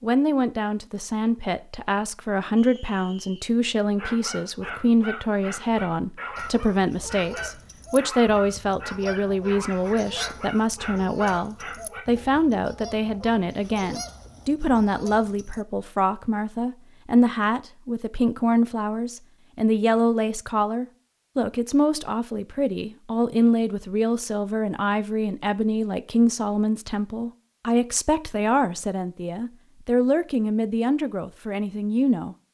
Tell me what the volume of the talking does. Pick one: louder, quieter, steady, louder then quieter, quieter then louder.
steady.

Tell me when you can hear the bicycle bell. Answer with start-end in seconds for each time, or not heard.
not heard.